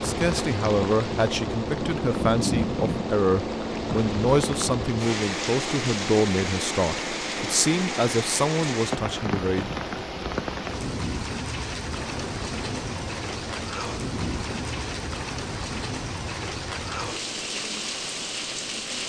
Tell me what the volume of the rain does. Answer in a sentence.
The volume of the rain stays about the same.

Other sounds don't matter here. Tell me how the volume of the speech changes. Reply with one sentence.
The volume of the speech stays about the same.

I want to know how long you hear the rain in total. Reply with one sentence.
You can hear the rain for 19 seconds altogether.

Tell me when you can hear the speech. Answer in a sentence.
You can hear the speech from 0.0 to 9.8 s.